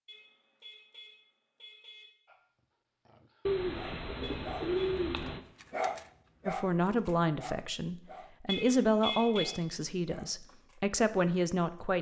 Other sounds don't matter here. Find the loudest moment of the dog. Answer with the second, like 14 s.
6 s.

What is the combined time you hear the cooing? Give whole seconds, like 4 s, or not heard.
2 s.